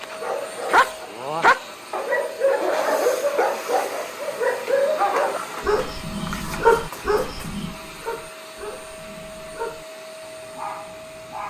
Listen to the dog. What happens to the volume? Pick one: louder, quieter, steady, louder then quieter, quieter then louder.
quieter.